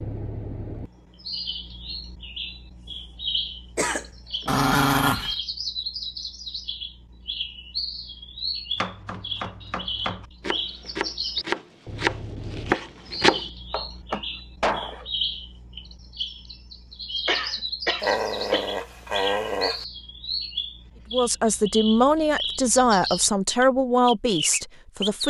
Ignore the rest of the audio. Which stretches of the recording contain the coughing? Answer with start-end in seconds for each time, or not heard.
3.8-4.5, 17.2-18.6.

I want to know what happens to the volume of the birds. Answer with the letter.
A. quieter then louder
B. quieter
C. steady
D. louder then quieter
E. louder
C.